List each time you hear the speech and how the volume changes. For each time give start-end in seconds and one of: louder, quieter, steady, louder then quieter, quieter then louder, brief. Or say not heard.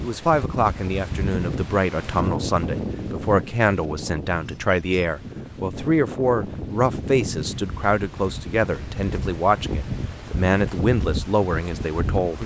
0.0-12.4 steady.